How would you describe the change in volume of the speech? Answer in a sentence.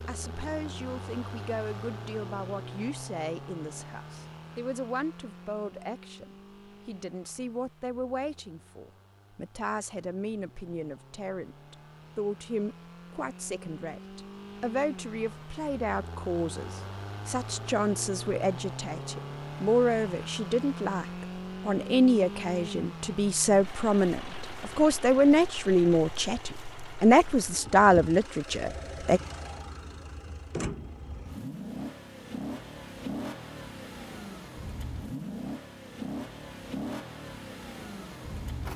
The volume of the speech goes up.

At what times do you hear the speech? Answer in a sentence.
You can hear the speech from 0.0 to 29.2 s.